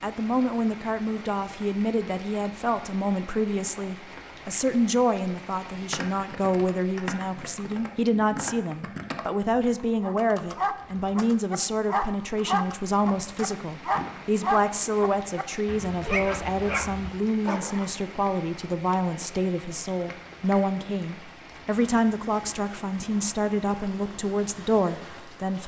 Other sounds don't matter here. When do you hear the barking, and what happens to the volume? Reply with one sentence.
The barking can be heard from 10.0 to 17.9 s, getting quieter then louder.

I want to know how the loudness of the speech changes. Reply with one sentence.
The volume of the speech stays about the same.